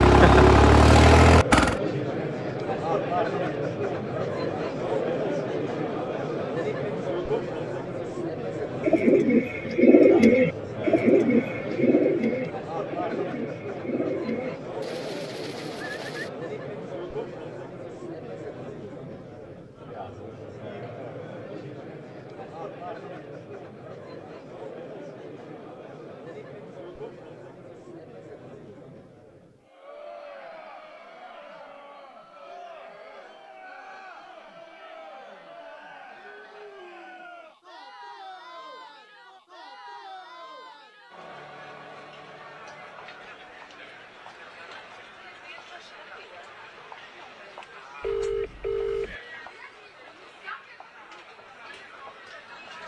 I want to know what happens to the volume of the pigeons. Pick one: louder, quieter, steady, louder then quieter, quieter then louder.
quieter.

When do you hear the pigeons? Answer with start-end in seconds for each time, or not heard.
8.8-16.3.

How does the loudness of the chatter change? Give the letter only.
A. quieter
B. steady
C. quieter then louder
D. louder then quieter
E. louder
A.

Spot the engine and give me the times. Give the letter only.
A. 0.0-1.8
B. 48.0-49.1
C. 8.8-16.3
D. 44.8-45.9
A.